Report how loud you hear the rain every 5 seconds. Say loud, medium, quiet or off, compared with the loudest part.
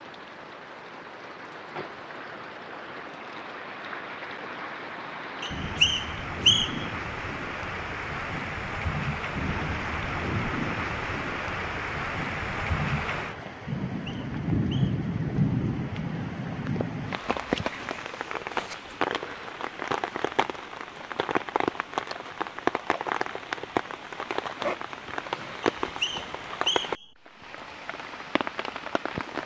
medium, loud, loud, loud, loud, loud.